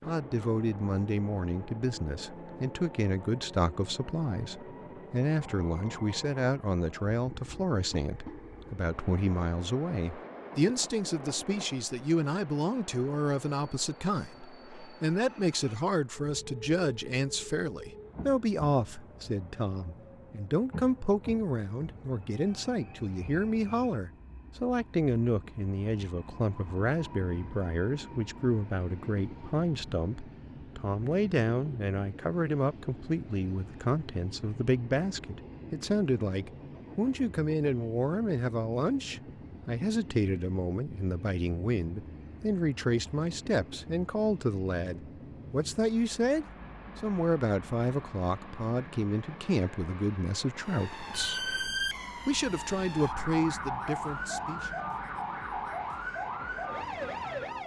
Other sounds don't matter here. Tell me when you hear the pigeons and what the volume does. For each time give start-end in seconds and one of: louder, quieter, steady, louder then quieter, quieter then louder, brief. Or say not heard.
not heard.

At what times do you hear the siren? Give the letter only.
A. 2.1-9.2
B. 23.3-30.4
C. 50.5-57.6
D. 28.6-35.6
C.